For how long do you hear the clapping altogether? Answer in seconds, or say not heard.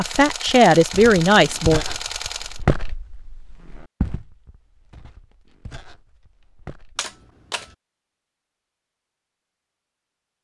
not heard.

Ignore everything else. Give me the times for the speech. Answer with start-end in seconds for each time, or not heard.
0.0-1.9.